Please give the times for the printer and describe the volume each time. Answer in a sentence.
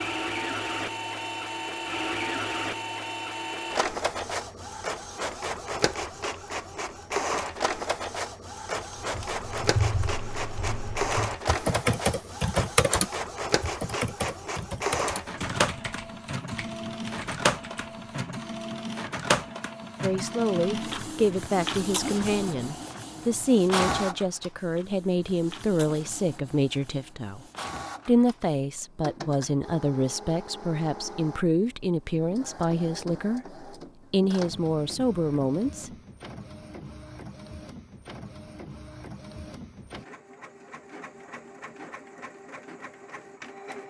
The printer can be heard from 0.0 to 43.8 s, getting quieter.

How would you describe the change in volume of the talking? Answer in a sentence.
The volume of the talking stays about the same.